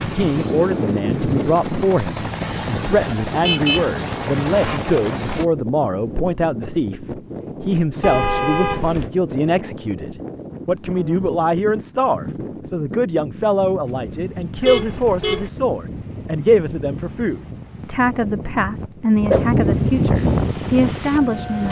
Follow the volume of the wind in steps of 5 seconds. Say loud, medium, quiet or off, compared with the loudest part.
medium, medium, medium, loud, loud.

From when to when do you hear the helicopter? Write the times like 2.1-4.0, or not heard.
0.0-5.5, 20.1-21.6.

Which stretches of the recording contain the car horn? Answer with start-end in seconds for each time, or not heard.
3.4-4.8, 8.0-9.1, 14.6-15.5.